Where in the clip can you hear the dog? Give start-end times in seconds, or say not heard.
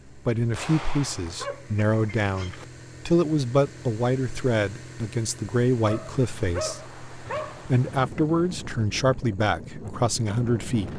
1.2-2.6, 5.8-7.7.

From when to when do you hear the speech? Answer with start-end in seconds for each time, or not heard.
0.1-10.9.